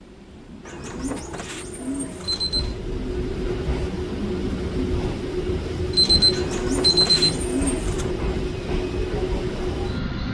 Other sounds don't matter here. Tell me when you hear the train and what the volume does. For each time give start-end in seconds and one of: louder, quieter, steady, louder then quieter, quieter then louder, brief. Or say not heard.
0.0-10.3 louder.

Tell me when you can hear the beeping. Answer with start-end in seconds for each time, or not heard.
2.2-2.8, 5.9-7.2.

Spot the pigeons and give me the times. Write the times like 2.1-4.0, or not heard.
0.7-2.5, 6.3-8.2.